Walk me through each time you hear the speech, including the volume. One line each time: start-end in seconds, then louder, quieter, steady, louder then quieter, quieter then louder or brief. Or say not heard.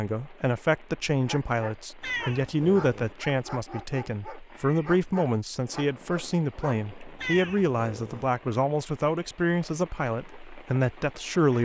0.0-11.6 steady.